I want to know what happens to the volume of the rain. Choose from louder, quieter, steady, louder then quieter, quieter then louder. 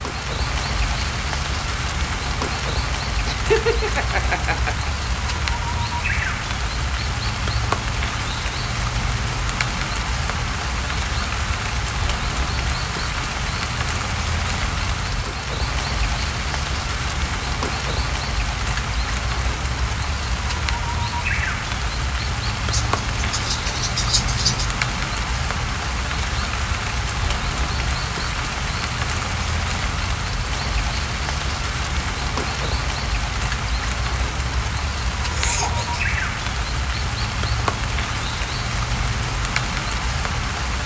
steady.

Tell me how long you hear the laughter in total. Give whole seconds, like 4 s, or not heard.
4 s.